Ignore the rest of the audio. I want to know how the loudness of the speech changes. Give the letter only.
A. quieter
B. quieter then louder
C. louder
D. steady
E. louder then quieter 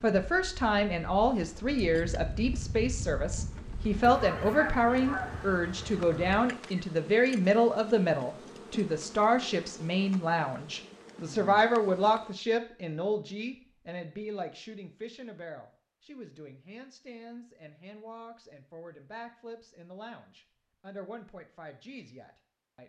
A.